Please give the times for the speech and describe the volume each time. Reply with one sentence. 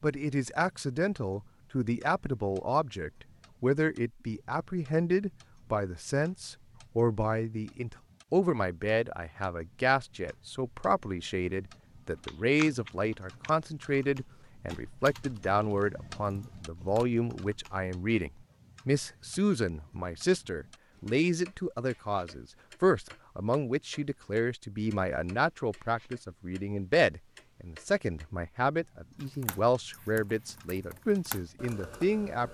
The speech can be heard from 0.0 to 32.4 s, at a steady volume.